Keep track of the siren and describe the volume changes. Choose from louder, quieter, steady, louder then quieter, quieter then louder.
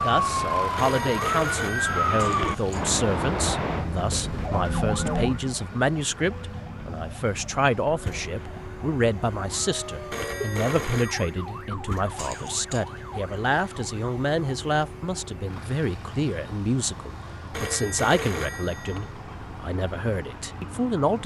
quieter.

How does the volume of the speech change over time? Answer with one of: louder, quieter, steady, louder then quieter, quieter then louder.
steady.